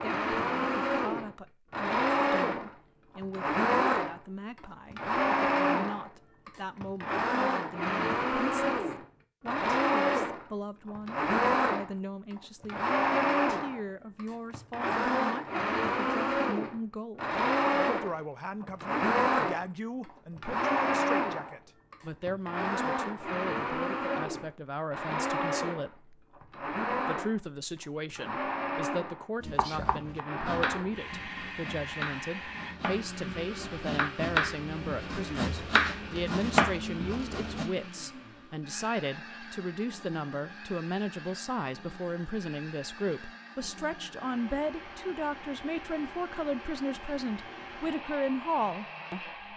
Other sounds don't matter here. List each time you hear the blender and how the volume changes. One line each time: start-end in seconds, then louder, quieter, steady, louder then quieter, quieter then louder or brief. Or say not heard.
0.0-49.5 quieter.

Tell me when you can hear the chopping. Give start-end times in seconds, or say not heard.
29.4-37.7.